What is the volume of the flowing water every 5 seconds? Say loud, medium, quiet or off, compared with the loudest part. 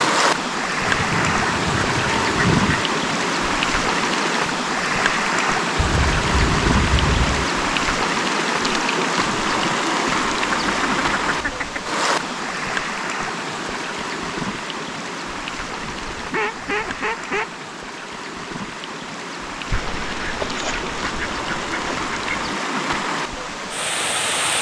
loud, loud, loud, medium, medium.